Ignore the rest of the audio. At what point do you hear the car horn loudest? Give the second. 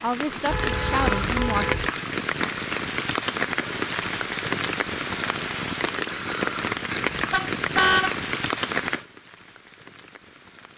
8 s.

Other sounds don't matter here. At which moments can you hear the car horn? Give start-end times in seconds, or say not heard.
0.5-1.9, 7.1-8.2.